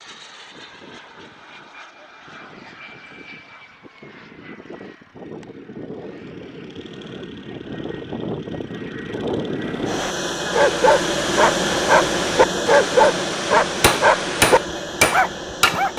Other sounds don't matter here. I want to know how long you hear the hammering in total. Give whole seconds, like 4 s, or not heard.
2 s.